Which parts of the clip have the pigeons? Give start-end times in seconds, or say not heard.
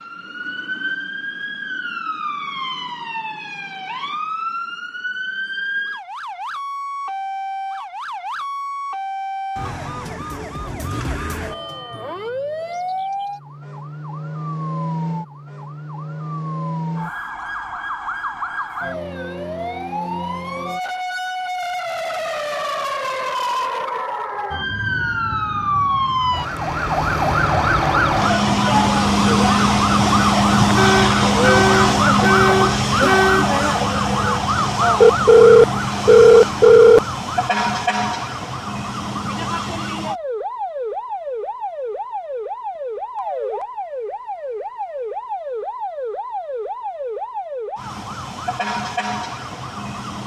not heard.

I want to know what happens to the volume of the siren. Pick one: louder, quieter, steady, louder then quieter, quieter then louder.
louder then quieter.